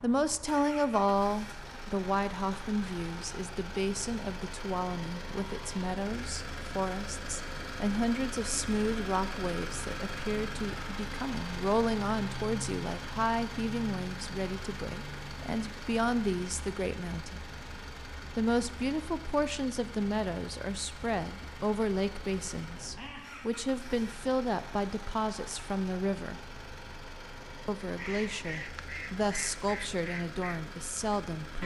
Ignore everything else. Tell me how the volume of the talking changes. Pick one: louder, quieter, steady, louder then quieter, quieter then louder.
steady.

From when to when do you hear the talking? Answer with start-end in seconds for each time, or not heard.
0.0-17.4, 18.4-26.4, 27.6-31.6.